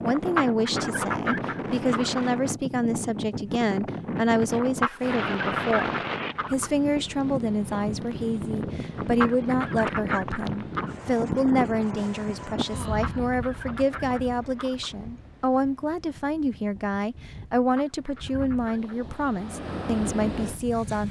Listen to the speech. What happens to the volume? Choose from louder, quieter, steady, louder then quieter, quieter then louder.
steady.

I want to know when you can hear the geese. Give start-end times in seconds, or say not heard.
0.1-2.3, 4.5-6.7, 8.9-10.9, 12.8-14.9, 17.6-19.0.